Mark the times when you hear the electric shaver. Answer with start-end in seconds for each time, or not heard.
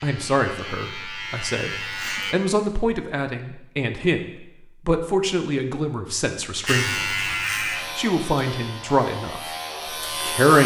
0.0-2.4, 6.7-10.6.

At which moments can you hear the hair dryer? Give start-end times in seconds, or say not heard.
not heard.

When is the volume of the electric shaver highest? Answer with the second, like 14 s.
7 s.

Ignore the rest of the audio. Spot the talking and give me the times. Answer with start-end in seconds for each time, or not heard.
0.0-7.3, 8.0-9.5, 10.2-10.6.